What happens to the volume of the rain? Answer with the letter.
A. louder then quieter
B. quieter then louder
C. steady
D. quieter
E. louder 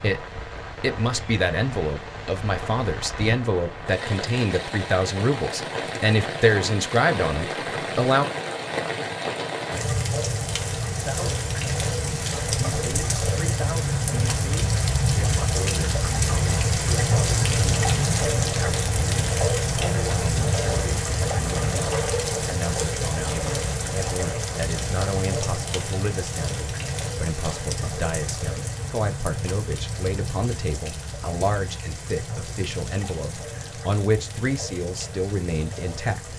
A.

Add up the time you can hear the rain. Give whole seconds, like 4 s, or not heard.
36 s.